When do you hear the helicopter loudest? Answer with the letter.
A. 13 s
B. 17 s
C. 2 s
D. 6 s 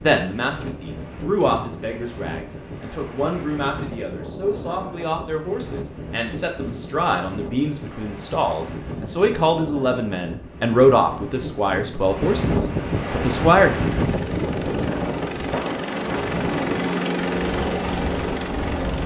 B.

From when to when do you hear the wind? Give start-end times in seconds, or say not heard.
0.0-19.0.